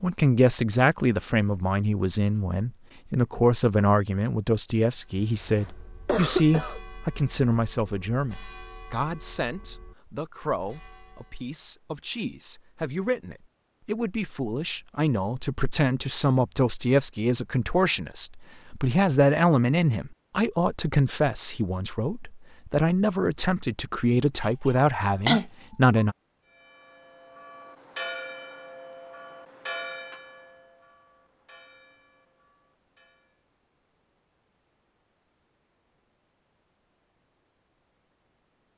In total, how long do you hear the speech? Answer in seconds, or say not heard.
26 s.